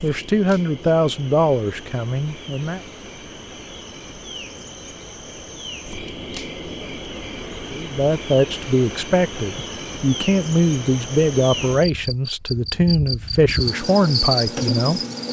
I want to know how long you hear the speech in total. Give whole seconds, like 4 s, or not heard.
10 s.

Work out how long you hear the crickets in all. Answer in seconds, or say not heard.
15 s.